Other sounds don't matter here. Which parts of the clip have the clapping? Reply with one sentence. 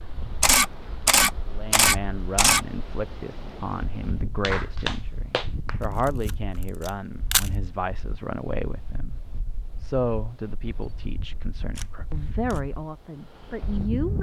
You can hear the clapping from 4.4 to 6.0 s.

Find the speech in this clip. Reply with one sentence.
You can hear the speech from 1.5 to 14.1 s.